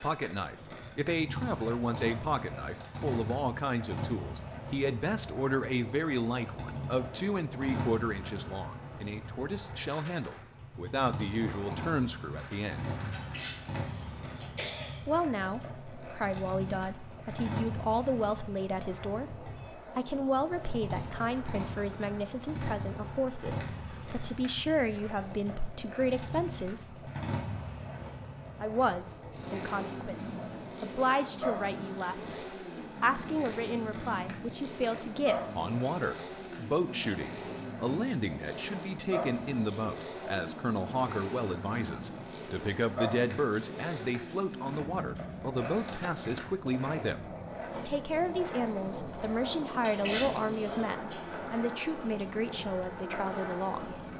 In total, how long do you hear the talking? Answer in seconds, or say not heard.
50 s.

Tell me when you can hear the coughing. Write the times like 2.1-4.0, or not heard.
13.1-15.1, 49.8-51.1.